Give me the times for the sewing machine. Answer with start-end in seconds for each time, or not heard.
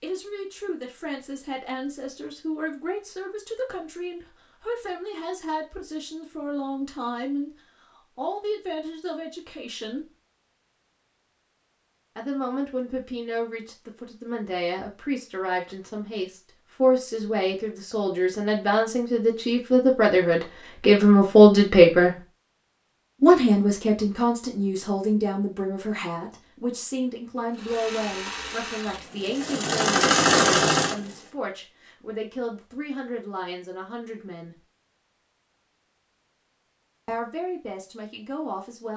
27.5-31.2.